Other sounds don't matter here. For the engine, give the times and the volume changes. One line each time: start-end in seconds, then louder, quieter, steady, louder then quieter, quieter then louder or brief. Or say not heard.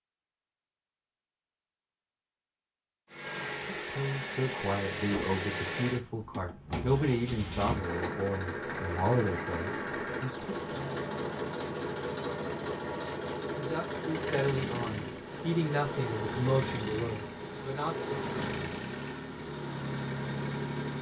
3.1-20.9 steady.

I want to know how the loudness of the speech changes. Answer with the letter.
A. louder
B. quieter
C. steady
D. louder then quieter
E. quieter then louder
C.